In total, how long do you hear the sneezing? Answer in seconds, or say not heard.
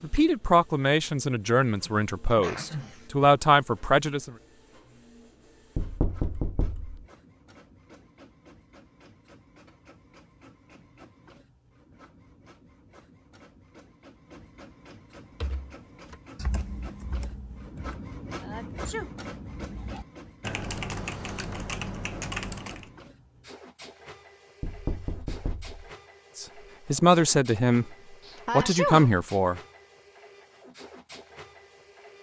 3 s.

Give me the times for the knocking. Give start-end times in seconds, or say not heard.
5.8-7.0, 24.6-25.9.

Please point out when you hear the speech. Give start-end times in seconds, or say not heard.
0.0-4.3, 26.4-27.9, 28.5-29.6.